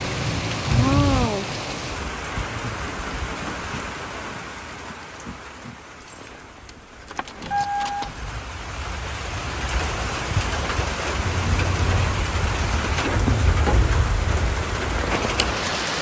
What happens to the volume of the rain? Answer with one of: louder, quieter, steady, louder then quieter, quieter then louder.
quieter then louder.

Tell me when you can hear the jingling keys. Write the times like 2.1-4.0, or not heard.
0.7-1.3, 6.0-8.3, 11.2-11.9.